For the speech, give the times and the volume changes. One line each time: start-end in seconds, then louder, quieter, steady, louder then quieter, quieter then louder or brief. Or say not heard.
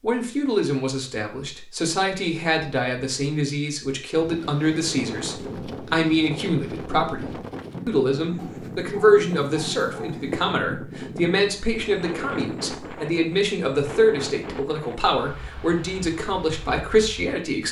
0.0-17.6 steady.